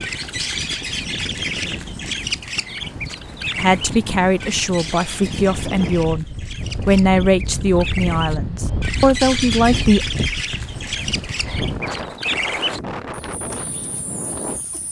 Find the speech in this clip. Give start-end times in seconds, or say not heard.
3.5-10.0.